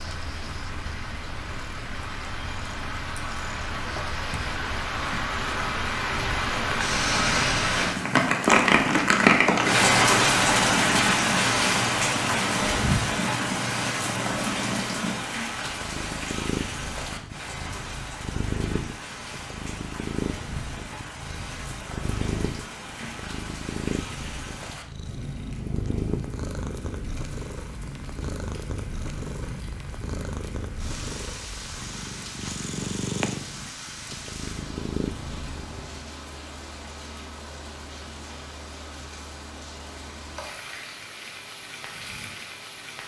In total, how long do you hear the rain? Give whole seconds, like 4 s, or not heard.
43 s.